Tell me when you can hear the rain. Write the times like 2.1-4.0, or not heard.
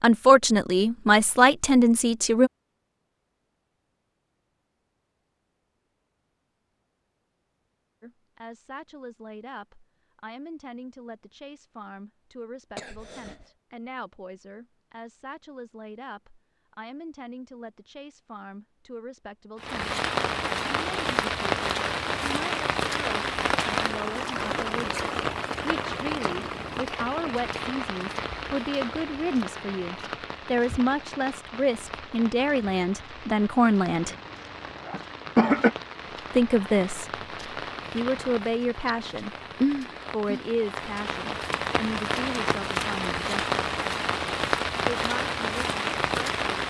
19.6-46.6.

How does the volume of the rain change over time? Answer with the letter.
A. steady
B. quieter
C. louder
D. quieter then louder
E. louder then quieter
D.